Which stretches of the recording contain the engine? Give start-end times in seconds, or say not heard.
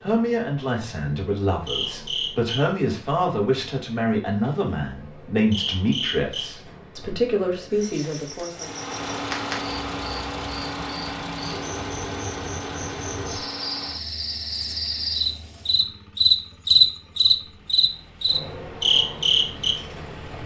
8.5-20.4.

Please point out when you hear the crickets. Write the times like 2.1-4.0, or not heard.
0.0-20.4.